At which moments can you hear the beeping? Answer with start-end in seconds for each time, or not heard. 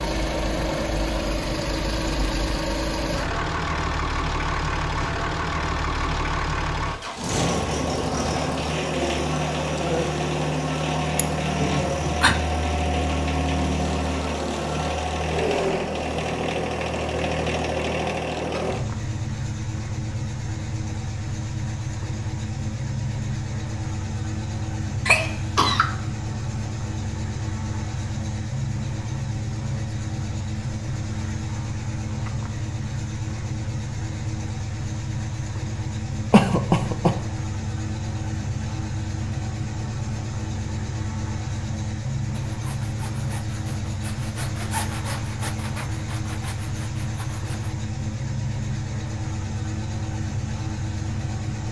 not heard.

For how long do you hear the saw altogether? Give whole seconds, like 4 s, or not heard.
5 s.